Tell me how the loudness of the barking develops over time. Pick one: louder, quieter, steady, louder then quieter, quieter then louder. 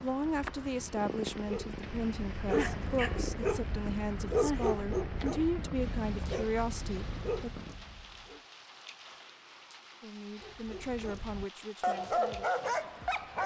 quieter then louder.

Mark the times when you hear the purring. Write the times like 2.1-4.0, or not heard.
0.0-7.8.